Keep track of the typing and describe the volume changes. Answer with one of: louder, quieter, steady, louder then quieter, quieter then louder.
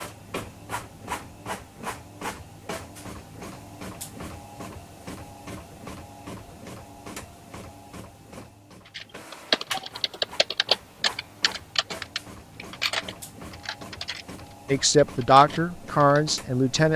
quieter.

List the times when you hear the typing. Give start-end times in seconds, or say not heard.
8.9-16.2.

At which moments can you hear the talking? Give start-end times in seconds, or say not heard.
14.7-16.9.